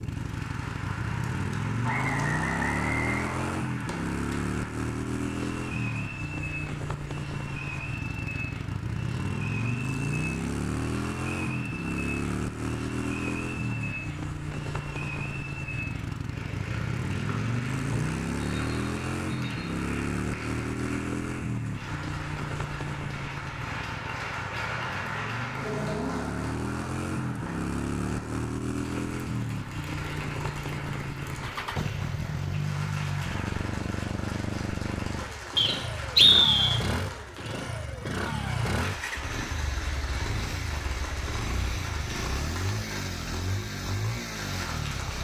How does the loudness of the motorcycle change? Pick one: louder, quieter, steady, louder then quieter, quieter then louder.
steady.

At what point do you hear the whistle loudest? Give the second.
36 s.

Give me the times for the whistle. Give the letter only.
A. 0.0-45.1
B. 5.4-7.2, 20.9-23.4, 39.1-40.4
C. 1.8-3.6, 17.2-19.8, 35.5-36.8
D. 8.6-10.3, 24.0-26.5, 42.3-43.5
C.